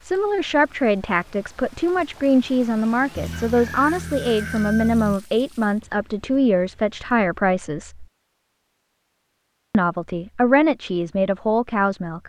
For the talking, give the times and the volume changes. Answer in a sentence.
The talking can be heard from 0.0 to 8.1 s, at a steady volume; and briefly from 9.7 to 12.2 s.